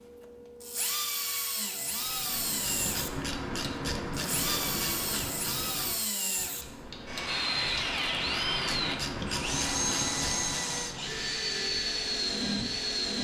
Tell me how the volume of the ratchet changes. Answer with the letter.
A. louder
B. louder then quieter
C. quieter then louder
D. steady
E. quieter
C.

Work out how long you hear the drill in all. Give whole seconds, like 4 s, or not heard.
13 s.